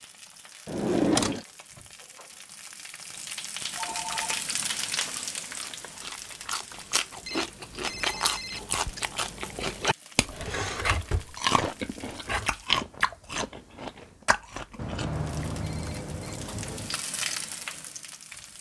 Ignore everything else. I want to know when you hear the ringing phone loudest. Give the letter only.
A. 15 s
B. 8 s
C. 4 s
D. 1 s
A.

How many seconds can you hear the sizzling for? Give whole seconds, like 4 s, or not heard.
16 s.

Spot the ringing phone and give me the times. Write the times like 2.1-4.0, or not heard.
3.1-4.4, 7.2-9.1, 14.8-17.1.